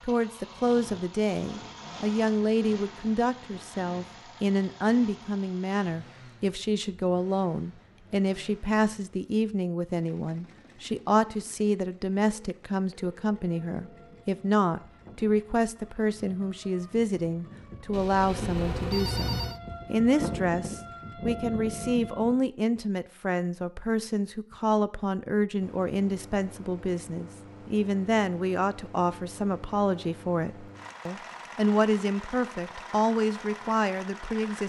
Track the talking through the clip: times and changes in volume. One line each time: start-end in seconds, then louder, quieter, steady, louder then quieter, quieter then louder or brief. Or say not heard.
0.0-34.6 steady.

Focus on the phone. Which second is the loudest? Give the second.
19 s.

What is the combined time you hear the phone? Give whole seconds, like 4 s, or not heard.
4 s.